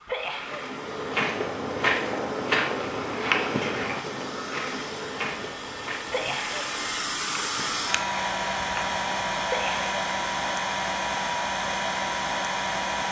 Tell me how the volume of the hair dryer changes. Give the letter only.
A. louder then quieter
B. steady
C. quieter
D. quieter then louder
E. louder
E.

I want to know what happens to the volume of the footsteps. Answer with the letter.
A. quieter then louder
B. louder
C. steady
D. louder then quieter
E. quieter
E.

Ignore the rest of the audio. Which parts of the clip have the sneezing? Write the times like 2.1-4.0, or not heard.
0.1-0.7, 6.1-6.7, 9.4-9.9.